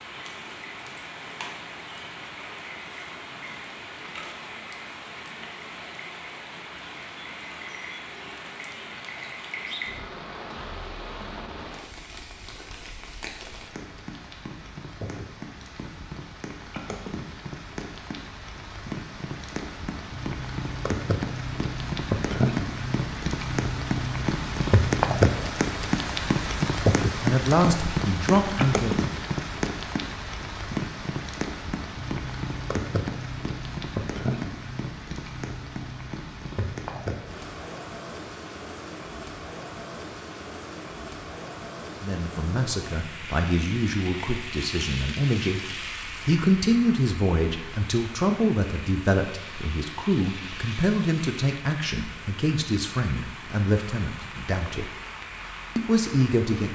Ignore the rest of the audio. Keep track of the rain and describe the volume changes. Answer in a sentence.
The loudness of the rain goes up, then down.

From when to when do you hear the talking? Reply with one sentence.
You can hear the talking from 27.2 to 29.1 s, from 42.0 to 45.6 s, from 46.2 to 55.0 s and from 55.8 to 56.7 s.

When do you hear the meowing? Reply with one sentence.
You can't hear the meowing here.